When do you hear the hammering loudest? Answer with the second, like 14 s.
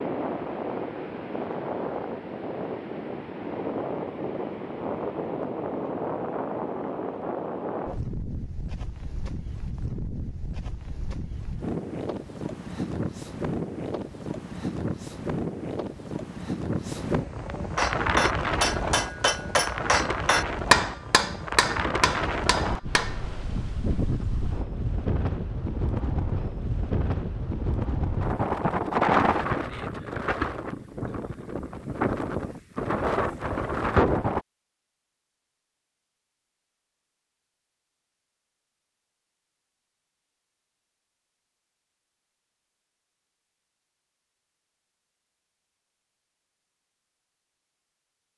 21 s.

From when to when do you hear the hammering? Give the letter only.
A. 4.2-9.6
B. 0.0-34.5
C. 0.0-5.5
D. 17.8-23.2
D.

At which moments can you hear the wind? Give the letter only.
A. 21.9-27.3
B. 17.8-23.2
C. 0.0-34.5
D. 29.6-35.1
C.